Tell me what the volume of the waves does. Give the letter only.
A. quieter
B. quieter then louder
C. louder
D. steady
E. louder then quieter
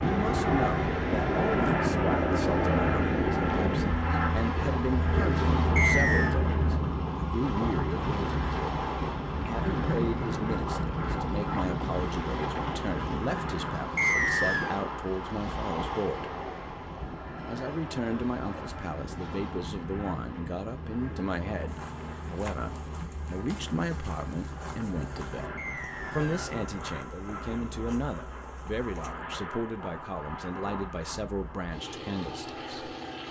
A.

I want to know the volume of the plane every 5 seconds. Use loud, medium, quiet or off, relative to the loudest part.
loud, loud, medium, quiet, quiet, medium, medium.